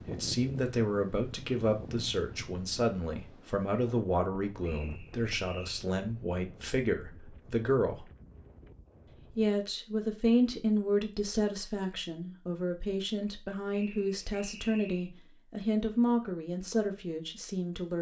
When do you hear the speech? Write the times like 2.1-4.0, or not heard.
0.1-8.1, 9.3-17.9.